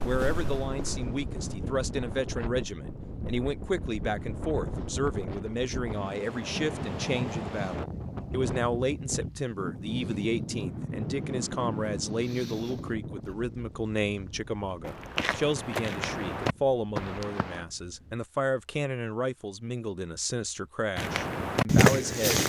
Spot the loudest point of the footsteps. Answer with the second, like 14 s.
22 s.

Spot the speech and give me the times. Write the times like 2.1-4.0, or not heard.
0.0-22.4.